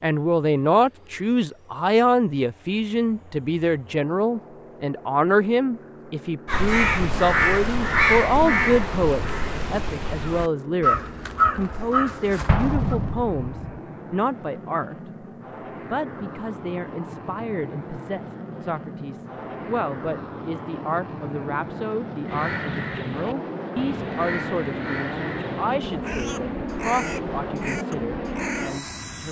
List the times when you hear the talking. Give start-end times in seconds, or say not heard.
0.0-14.9, 15.9-29.2.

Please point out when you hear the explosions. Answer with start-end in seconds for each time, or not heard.
12.4-13.8.